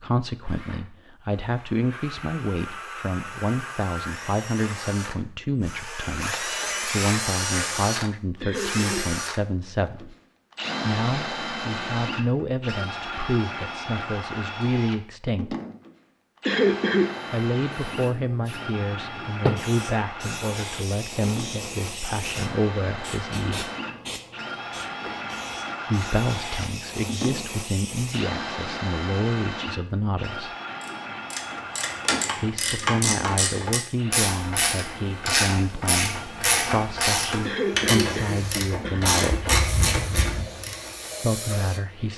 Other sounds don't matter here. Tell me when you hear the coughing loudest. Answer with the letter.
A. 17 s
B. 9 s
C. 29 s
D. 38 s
A.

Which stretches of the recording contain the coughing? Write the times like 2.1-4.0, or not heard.
8.4-9.2, 16.4-17.1, 37.4-39.4.